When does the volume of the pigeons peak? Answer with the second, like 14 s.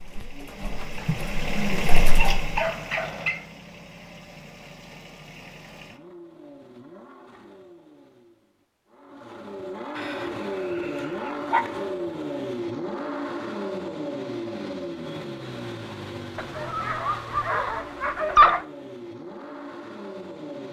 2 s.